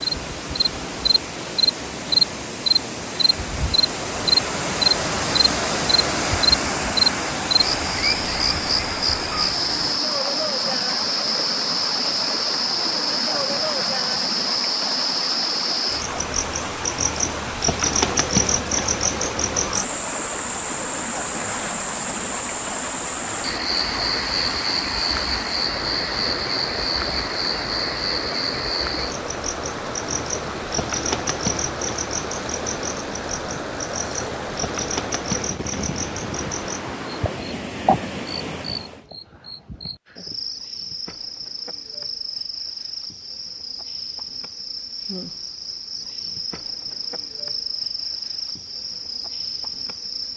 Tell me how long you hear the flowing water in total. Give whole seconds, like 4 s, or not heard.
39 s.